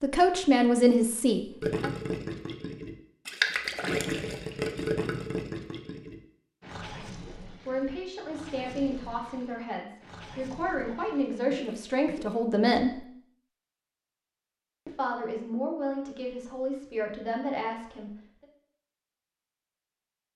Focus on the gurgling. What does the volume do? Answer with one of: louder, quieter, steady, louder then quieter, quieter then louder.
quieter.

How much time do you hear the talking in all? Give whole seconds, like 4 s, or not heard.
11 s.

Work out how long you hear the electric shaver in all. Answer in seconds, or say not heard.
not heard.